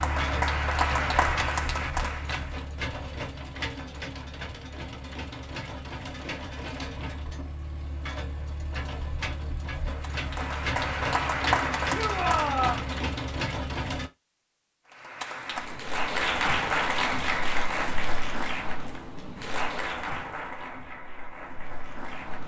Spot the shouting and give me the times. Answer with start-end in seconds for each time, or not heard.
11.9-12.8.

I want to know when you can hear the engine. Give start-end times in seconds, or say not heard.
0.0-14.1.